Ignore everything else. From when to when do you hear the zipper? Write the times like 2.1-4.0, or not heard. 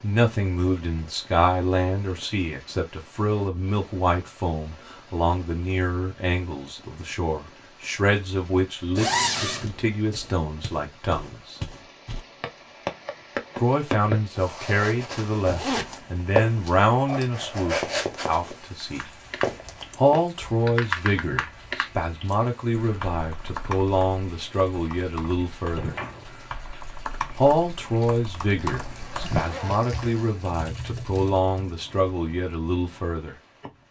8.9-9.7, 15.4-16.0, 28.6-30.6.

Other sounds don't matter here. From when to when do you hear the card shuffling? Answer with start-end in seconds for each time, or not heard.
25.8-26.5.